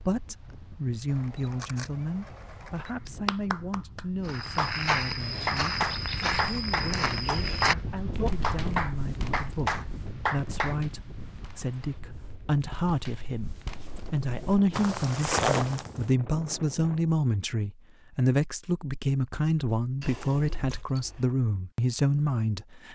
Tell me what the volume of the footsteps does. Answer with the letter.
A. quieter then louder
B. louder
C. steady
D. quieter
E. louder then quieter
A.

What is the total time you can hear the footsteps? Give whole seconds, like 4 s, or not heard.
12 s.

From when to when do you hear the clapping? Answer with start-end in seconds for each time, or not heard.
2.9-10.8.